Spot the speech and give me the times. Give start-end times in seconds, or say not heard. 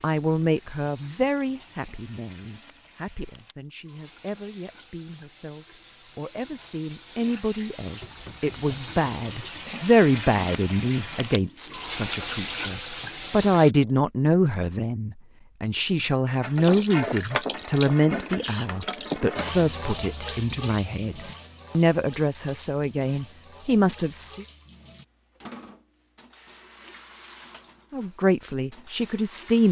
0.0-24.4, 27.9-29.6.